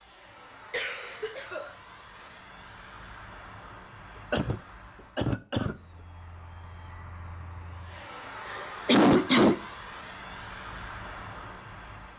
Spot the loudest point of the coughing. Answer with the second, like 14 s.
9 s.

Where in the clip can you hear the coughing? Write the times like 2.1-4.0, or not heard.
0.7-2.4, 4.3-5.8, 8.6-9.6.